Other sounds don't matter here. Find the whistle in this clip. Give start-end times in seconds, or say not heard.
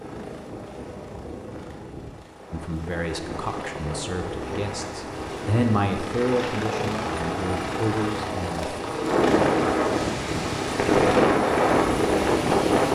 not heard.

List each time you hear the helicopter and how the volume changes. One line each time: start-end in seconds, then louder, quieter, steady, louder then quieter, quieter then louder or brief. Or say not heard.
0.0-12.8 louder.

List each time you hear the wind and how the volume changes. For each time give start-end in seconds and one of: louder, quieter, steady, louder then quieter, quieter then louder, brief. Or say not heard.
2.4-12.8 louder.